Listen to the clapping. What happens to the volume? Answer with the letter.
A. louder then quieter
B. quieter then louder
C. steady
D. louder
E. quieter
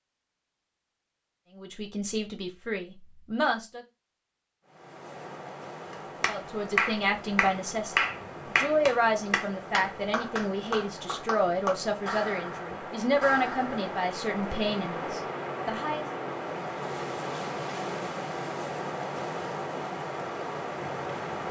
E.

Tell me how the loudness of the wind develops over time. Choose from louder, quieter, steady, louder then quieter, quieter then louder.
louder.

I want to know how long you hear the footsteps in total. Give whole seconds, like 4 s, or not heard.
not heard.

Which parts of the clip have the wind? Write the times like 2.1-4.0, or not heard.
4.7-21.4.